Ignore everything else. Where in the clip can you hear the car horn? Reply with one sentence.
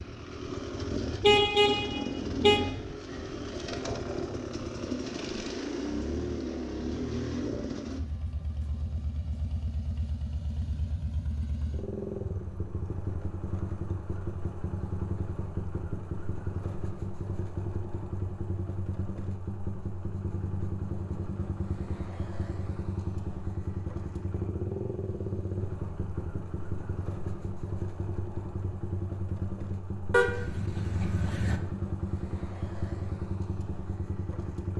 You can hear the car horn from 1.2 to 2.6 s and from 30.1 to 31.6 s.